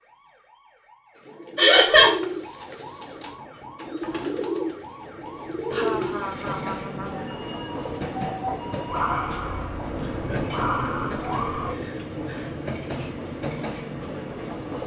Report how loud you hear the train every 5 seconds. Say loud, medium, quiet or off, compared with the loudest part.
quiet, loud, loud.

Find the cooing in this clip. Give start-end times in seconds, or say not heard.
1.1-6.8.